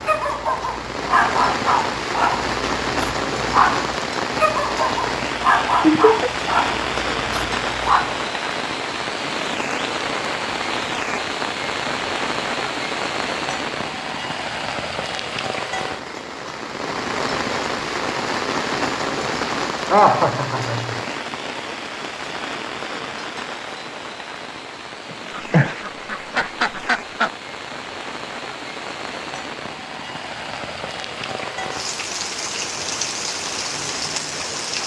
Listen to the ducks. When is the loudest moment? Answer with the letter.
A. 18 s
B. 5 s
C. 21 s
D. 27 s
D.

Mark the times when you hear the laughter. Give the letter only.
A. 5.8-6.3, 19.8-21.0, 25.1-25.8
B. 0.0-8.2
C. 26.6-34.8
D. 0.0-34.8
A.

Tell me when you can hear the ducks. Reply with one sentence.
The ducks can be heard from 25.3 to 27.3 s.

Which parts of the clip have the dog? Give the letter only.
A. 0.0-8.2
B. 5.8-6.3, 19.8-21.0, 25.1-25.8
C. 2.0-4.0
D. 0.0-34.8
A.